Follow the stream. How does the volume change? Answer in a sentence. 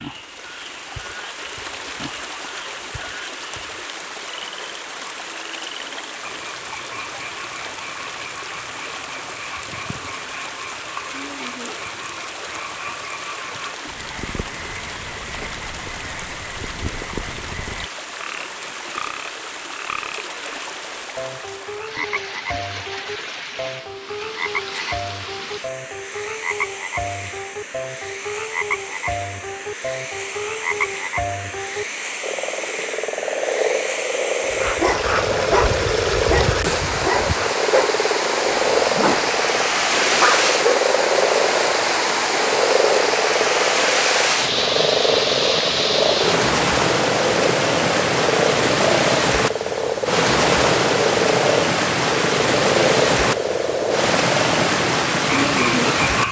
The loudness of the stream goes up.